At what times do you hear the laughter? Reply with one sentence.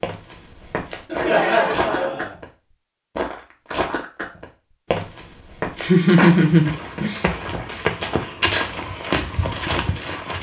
The laughter can be heard from 1.1 to 2.4 s and from 5.8 to 7.2 s.